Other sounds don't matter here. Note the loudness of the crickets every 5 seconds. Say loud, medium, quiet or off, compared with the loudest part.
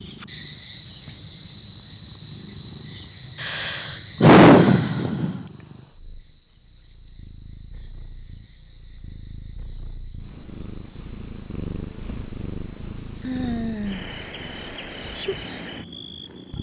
loud, quiet, quiet, quiet.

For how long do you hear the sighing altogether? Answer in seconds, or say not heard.
3 s.